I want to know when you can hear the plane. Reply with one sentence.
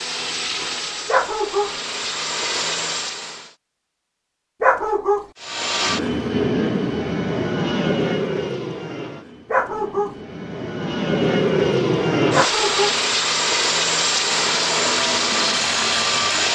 You can hear the plane from 0.0 to 3.5 s and from 5.4 to 16.4 s.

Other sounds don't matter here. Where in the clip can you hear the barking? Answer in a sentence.
You can hear the barking from 1.1 to 1.8 s, from 4.6 to 5.2 s, from 9.5 to 10.2 s and from 12.3 to 12.9 s.